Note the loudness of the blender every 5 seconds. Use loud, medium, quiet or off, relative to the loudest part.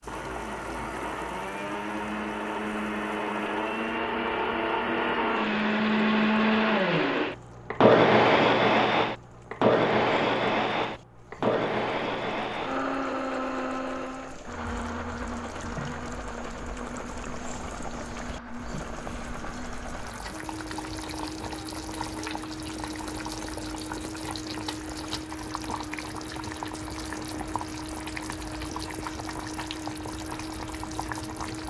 medium, loud, medium, quiet, quiet, quiet, quiet.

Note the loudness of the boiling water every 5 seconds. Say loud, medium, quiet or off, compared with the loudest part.
medium, quiet, medium, loud, loud, loud, loud.